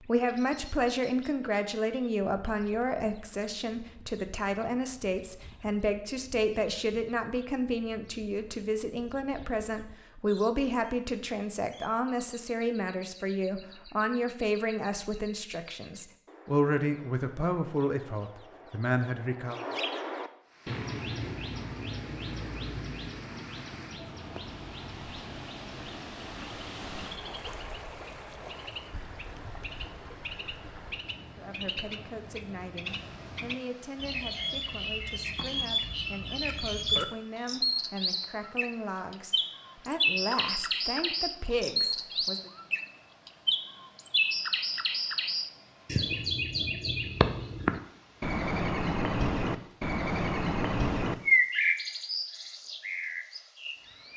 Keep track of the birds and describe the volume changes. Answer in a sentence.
The volume of the birds goes up.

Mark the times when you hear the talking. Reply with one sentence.
You can hear the talking from 0.0 to 19.6 s and from 31.4 to 42.5 s.